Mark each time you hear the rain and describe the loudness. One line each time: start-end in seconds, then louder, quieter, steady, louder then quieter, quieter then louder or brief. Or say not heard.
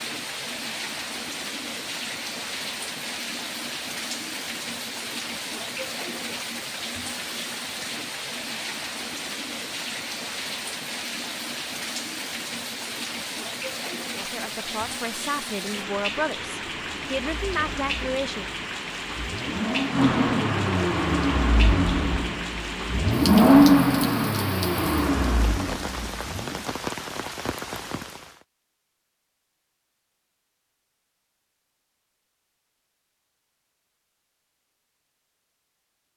0.0-28.4 steady.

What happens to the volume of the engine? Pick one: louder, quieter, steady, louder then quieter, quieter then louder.
louder then quieter.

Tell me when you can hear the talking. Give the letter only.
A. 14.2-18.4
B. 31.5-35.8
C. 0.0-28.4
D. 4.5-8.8
A.